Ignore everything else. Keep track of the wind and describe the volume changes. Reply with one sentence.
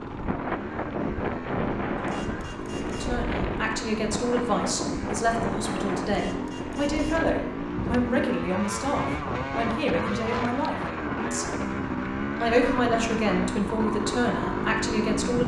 The volume of the wind goes down.